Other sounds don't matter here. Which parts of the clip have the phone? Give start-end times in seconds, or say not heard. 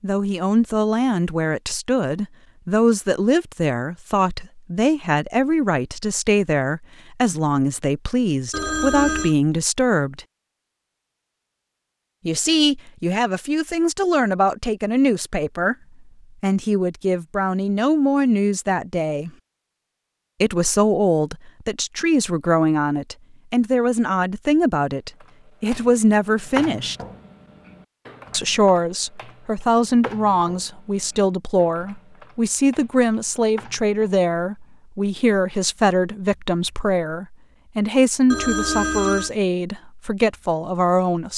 8.5-9.3, 38.3-39.3.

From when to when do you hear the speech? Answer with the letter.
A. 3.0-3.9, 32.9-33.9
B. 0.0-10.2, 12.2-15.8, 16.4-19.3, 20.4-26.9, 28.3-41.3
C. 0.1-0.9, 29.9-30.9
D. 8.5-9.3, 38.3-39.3
B.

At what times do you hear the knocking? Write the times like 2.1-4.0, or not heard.
not heard.